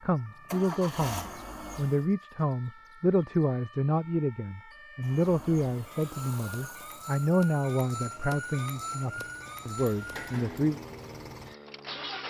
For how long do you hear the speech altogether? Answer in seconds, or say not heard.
11 s.